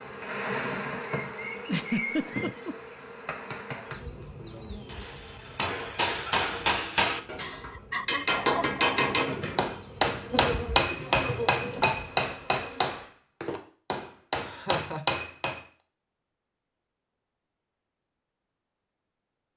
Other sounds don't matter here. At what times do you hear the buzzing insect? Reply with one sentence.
The buzzing insect can be heard from 0.0 to 13.1 s.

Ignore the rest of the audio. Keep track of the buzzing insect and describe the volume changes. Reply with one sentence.
The loudness of the buzzing insect goes down, then up.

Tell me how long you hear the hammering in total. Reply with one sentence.
The hammering can be heard for 11 seconds in total.